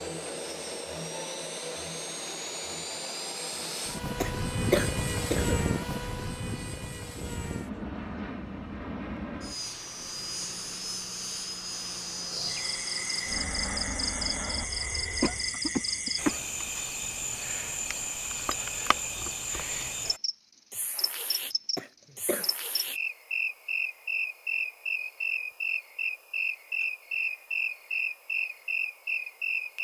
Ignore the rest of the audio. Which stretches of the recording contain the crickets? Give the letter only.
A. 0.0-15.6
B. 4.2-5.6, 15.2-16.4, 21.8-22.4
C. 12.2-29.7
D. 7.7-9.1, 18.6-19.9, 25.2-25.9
C.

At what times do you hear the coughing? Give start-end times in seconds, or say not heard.
4.2-5.6, 15.2-16.4, 21.8-22.4.